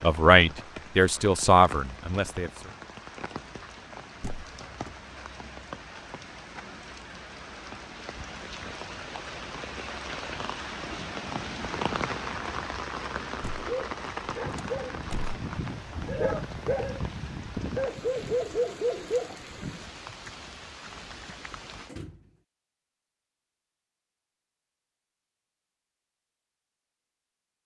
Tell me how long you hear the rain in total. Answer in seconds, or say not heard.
22 s.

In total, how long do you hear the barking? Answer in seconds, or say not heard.
6 s.